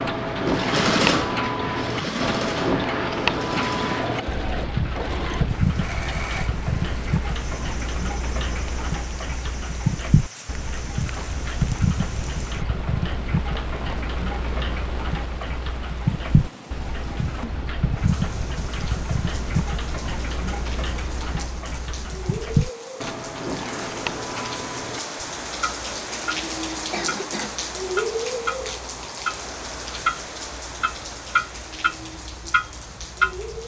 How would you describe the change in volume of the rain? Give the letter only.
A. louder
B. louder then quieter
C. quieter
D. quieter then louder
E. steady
A.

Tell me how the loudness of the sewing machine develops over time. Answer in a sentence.
The loudness of the sewing machine goes down.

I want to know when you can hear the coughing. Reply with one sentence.
The coughing can be heard from 26.9 to 27.5 s.